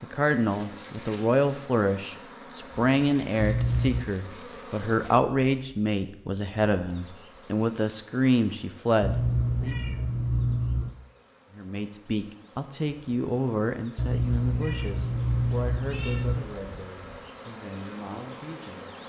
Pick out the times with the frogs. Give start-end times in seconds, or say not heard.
not heard.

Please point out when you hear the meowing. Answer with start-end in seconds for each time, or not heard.
3.4-4.0, 9.0-10.9, 13.9-16.4.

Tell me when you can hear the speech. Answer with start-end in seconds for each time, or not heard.
0.0-9.8, 11.6-18.9.